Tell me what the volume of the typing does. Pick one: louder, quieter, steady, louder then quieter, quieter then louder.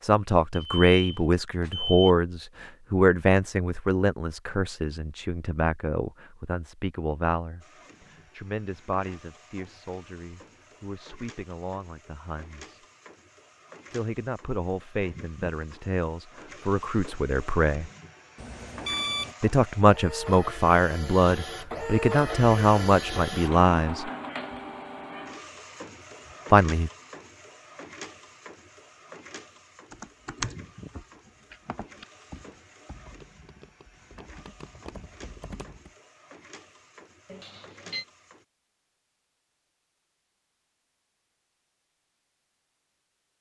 quieter then louder.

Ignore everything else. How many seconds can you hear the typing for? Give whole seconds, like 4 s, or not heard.
6 s.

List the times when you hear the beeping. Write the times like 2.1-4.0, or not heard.
0.5-2.1, 18.4-19.4, 37.2-38.0.